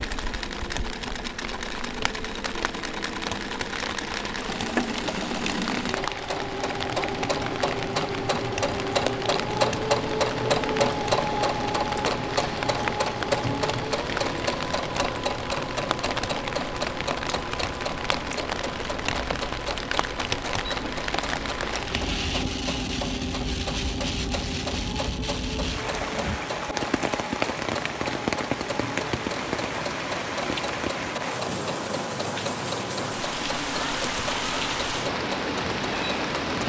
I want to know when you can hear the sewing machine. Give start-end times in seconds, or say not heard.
0.0-36.6.